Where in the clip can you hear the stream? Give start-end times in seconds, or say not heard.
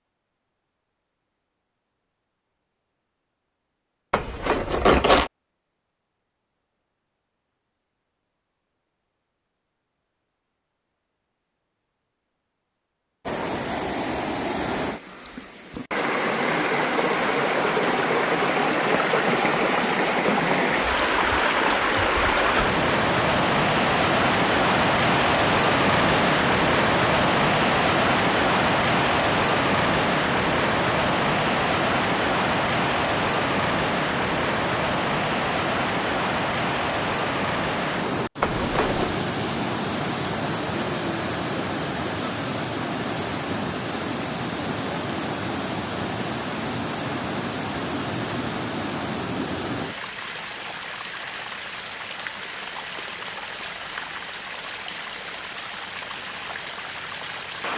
13.2-57.7.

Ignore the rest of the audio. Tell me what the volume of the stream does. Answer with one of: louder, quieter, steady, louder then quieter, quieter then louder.
quieter.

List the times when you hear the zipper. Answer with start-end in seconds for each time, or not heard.
4.1-5.3, 38.4-39.2.